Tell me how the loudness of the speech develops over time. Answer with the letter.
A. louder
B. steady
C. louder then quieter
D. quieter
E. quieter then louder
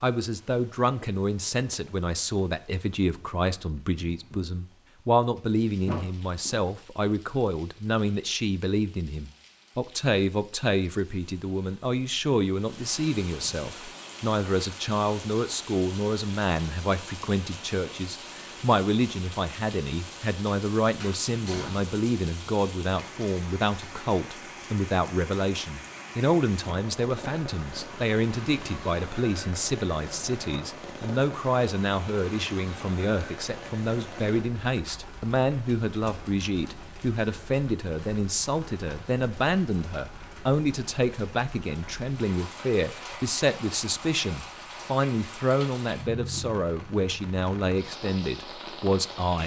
B.